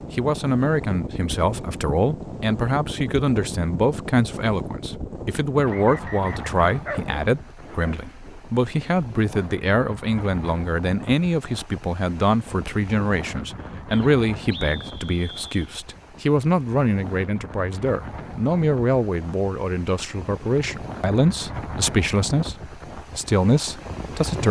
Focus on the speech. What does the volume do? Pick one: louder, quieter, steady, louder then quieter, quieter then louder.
steady.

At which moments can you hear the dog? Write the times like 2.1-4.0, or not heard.
6.7-8.4.